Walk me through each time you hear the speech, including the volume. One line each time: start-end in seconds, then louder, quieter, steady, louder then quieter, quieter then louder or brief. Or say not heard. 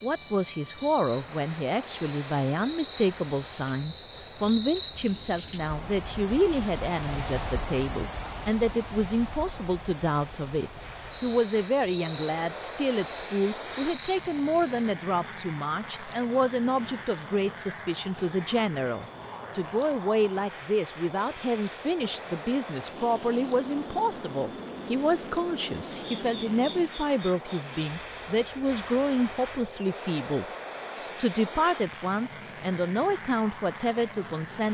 0.0-34.6 steady.